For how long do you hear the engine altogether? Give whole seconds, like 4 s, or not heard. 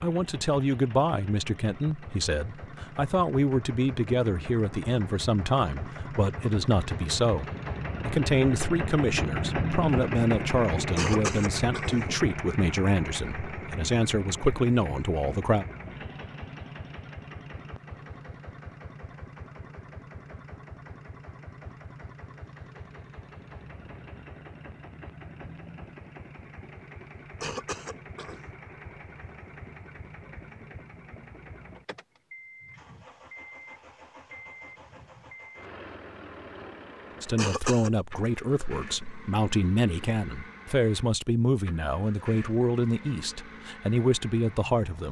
45 s.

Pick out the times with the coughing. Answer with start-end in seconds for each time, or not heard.
10.8-12.2, 27.1-28.5, 37.1-37.9.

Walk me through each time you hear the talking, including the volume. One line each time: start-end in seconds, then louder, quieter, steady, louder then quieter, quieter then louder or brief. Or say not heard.
0.0-15.7 steady
37.2-45.0 steady.